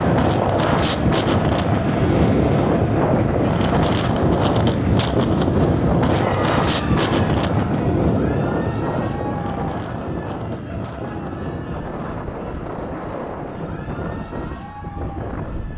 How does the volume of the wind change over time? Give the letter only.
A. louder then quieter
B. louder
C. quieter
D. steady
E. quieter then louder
C.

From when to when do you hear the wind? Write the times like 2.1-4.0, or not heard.
0.0-15.7.